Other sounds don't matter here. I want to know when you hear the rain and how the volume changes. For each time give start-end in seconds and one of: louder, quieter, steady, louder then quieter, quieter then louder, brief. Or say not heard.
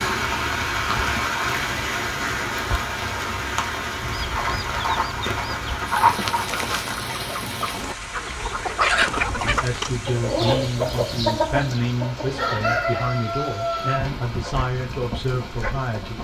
0.0-16.1 quieter.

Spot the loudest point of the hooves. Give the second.
6 s.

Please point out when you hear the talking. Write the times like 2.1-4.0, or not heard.
9.4-16.1.